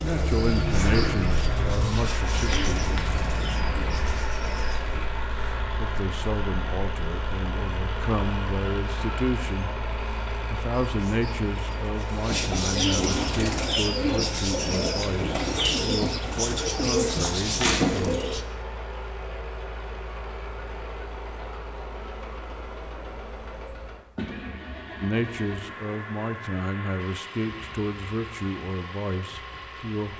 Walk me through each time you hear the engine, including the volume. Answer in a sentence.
You can hear the engine from 0.0 to 30.1 s, getting quieter.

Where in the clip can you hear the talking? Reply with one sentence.
The talking can be heard from 0.0 to 2.9 s, from 5.3 to 9.7 s, from 10.5 to 18.2 s and from 25.0 to 30.1 s.